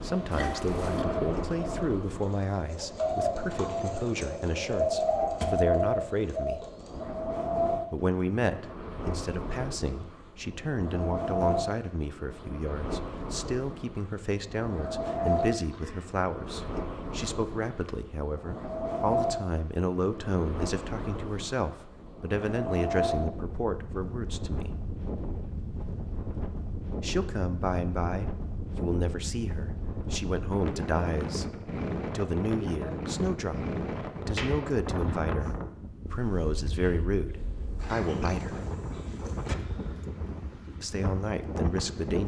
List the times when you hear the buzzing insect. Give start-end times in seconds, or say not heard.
not heard.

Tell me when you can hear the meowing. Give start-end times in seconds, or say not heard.
not heard.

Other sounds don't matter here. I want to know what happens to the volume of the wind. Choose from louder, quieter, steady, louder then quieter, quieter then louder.
steady.